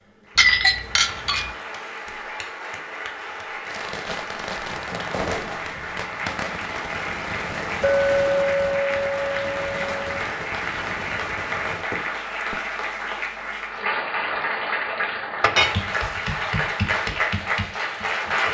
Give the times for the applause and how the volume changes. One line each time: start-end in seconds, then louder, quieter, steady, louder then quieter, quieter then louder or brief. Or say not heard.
0.0-18.5 louder.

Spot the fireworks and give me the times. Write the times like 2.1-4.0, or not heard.
3.6-12.6.